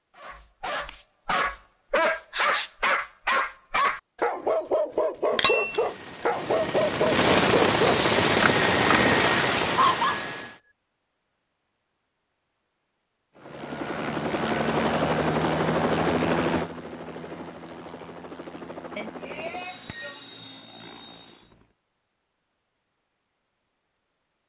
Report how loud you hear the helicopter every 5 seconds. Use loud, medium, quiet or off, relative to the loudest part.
off, loud, medium, medium, quiet.